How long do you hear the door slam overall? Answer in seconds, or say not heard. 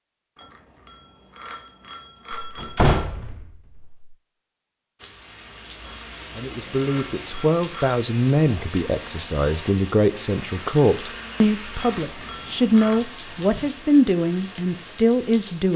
2 s.